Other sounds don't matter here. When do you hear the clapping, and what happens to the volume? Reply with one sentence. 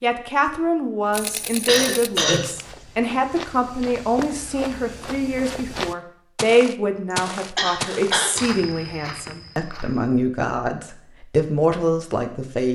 You can't hear the clapping here.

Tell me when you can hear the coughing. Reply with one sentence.
You can hear the coughing from 1.6 to 2.4 s and from 7.1 to 8.4 s.